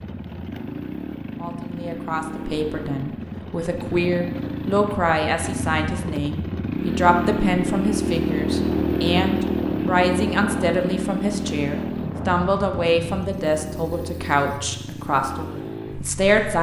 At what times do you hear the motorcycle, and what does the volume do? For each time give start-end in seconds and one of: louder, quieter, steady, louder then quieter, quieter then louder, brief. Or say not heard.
0.0-16.5 louder then quieter.